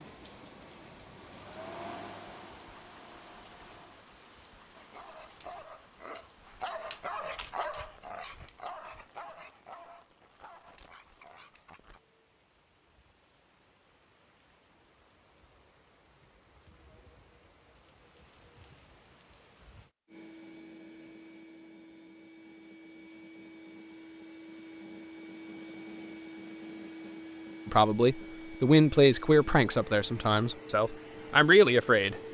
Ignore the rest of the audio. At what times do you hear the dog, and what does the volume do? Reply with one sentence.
You can hear the dog from 4.7 to 12.0 s, getting louder then quieter.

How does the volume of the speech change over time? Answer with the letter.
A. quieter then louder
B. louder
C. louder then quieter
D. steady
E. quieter
A.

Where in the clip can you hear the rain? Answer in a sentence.
The rain can be heard from 0.0 to 19.9 s.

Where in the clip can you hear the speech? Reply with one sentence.
The speech can be heard from 27.6 to 32.3 s.